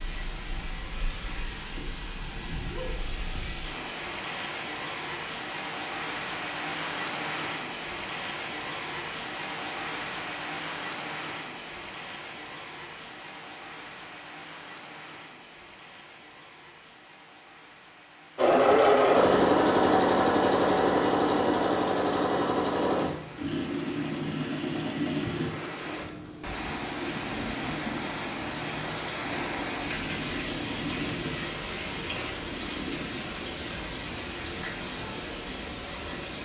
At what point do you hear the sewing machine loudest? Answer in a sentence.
The loudest moment of the sewing machine is at 19 seconds.